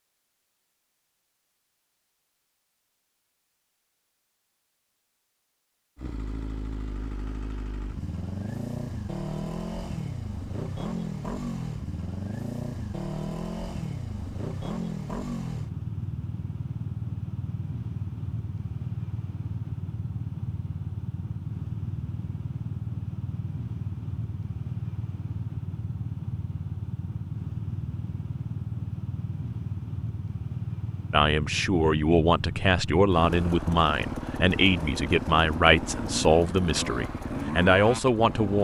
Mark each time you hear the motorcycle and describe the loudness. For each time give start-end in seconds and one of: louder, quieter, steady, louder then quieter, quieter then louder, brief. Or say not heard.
6.0-38.5 steady.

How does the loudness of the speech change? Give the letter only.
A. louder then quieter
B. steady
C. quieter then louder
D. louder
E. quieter
B.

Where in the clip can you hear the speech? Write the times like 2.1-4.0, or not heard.
31.1-38.5.